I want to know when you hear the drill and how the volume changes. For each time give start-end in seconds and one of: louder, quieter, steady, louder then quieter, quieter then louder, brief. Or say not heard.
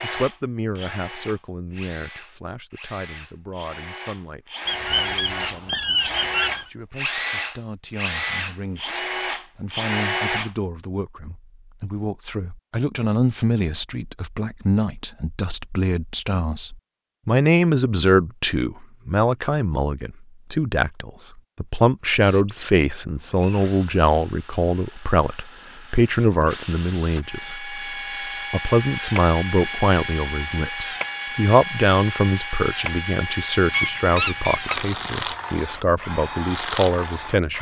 0.0-10.5 louder
23.1-37.5 louder.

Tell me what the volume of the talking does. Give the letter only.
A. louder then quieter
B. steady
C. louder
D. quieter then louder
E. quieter
C.